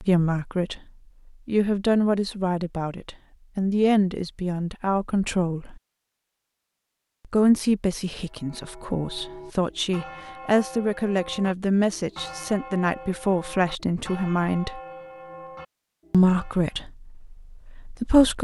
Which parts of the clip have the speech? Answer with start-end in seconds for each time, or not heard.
0.0-0.8, 1.4-5.8, 7.3-14.8, 16.1-18.3.